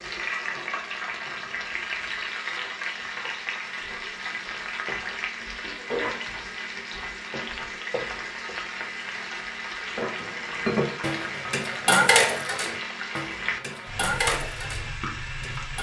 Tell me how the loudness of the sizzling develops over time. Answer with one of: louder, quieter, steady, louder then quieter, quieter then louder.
steady.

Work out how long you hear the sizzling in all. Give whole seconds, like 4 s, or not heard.
16 s.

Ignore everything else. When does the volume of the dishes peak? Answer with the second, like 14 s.
12 s.